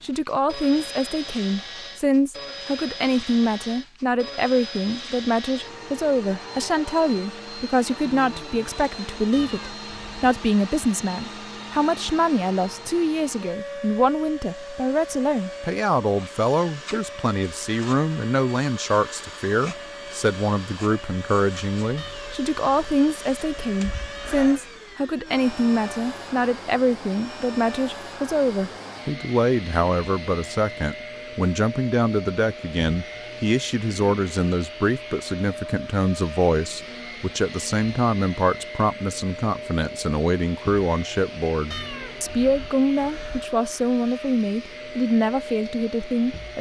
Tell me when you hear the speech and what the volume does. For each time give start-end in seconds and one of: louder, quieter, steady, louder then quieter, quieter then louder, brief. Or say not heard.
0.0-46.5 steady.